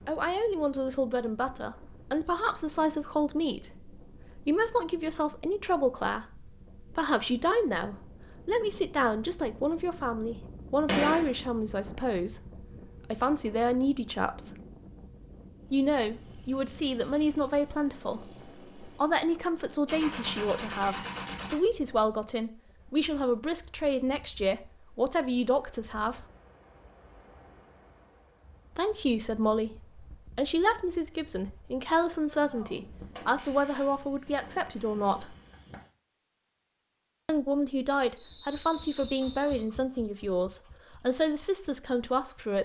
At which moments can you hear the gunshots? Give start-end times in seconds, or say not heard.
10.8-11.3, 19.9-21.6, 31.9-35.9.